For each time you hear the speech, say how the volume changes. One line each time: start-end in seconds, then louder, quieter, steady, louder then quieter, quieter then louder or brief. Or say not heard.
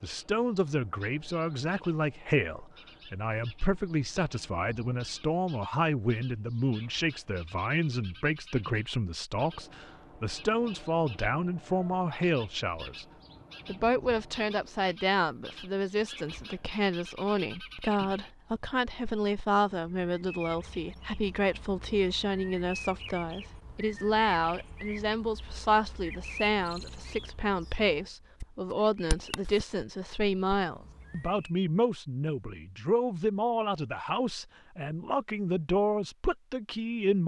0.0-13.1 steady
13.7-37.2 steady.